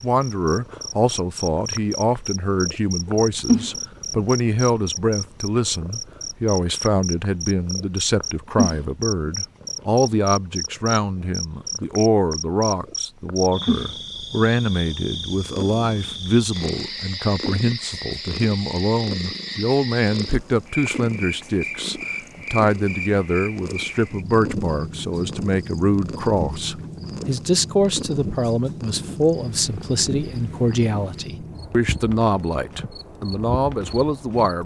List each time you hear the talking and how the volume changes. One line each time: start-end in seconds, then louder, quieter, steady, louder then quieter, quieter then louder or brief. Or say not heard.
0.0-34.6 steady.